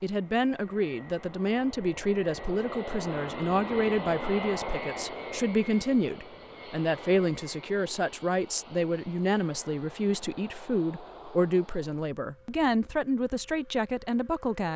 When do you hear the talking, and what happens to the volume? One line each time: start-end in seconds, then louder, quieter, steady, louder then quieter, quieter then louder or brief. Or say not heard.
0.0-14.7 steady.